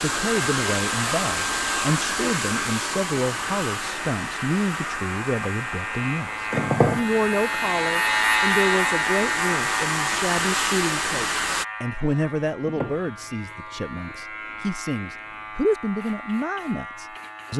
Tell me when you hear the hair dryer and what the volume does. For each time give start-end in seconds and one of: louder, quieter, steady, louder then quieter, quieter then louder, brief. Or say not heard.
0.0-11.7 quieter then louder.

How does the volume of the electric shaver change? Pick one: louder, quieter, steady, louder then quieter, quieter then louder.
louder then quieter.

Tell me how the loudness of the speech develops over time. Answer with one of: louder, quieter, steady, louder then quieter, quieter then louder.
steady.